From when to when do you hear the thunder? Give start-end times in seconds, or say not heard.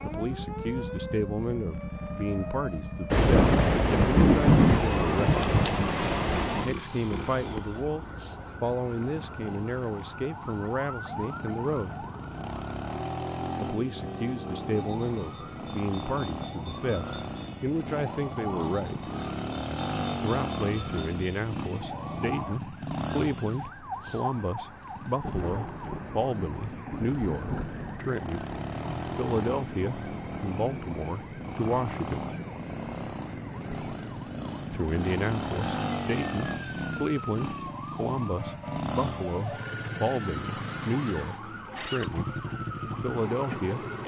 3.1-6.7, 25.2-27.9.